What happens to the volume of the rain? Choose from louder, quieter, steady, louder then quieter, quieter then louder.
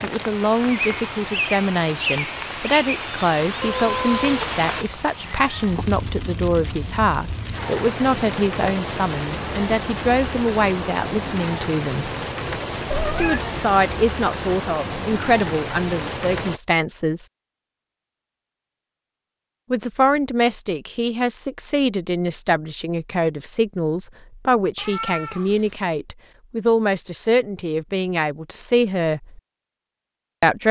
steady.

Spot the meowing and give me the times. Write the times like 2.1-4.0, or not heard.
3.6-5.8, 12.9-13.5, 24.8-25.8.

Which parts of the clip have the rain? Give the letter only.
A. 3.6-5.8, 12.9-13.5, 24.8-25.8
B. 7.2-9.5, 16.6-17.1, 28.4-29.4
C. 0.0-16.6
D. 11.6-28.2
C.